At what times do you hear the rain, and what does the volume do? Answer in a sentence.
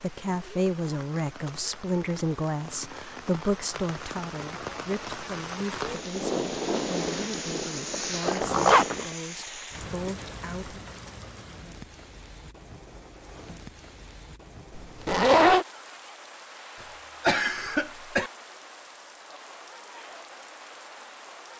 You can hear the rain from 0.0 to 21.5 s, getting louder then quieter.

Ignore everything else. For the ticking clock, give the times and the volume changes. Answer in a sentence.
The ticking clock can't be heard in this clip.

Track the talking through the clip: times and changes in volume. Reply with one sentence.
The talking can be heard from 0.0 to 10.8 s, getting quieter.